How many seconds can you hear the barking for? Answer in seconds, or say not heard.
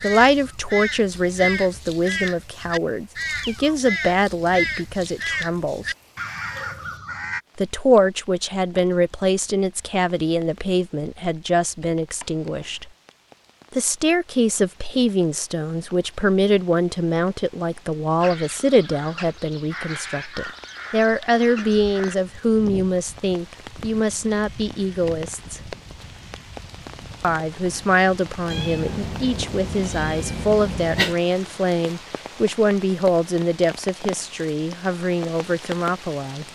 not heard.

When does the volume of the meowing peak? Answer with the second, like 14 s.
31 s.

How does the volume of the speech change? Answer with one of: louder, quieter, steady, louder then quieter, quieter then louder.
steady.